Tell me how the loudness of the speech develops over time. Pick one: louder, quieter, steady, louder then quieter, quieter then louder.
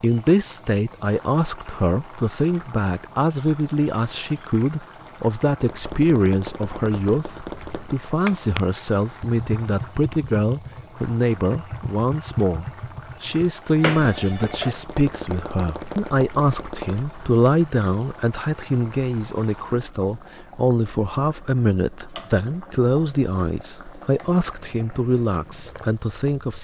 steady.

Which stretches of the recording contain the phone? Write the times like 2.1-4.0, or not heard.
13.8-14.8.